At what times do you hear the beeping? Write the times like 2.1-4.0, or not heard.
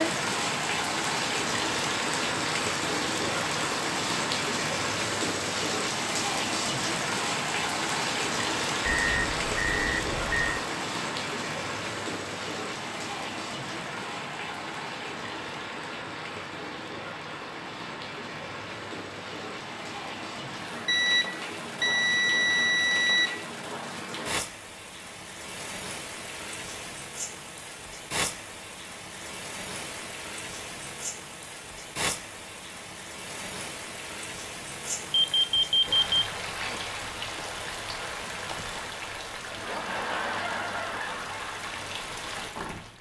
8.8-10.7, 20.9-23.4, 35.1-36.2.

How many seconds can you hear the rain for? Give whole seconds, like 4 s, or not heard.
43 s.